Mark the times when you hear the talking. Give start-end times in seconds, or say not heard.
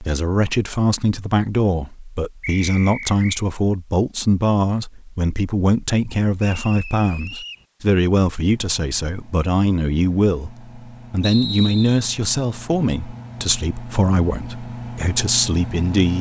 0.0-16.1.